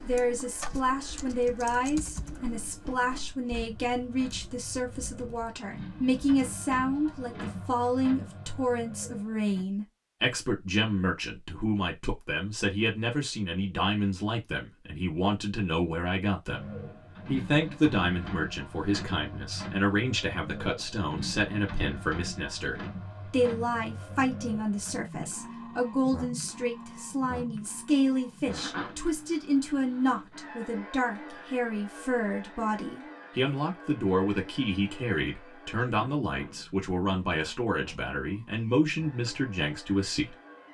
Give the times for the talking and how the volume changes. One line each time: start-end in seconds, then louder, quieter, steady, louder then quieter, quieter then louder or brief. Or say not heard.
0.0-16.6 steady
17.2-40.4 steady.